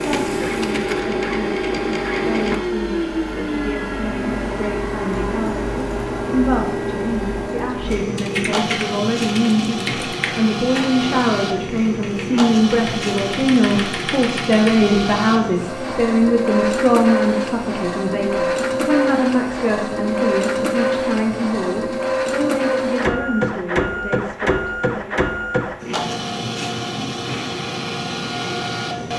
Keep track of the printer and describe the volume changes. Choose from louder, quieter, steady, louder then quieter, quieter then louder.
steady.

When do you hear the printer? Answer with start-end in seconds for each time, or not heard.
0.0-29.1.